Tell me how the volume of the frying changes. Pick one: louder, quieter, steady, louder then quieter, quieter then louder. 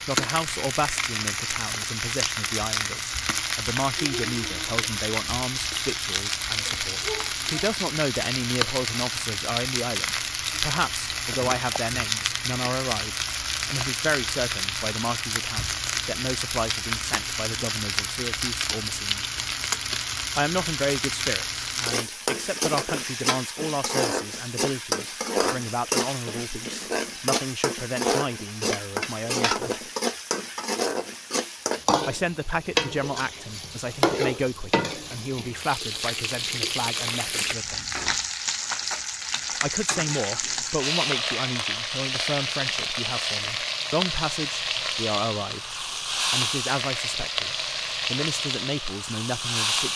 steady.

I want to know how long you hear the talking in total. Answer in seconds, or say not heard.
45 s.